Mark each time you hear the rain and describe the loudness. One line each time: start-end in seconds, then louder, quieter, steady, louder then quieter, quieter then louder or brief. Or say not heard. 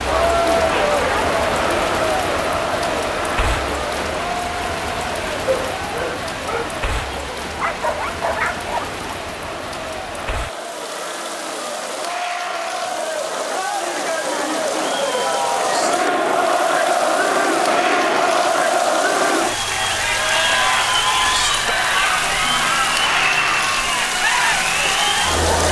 0.0-25.6 quieter then louder.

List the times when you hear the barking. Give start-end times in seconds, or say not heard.
5.5-9.0.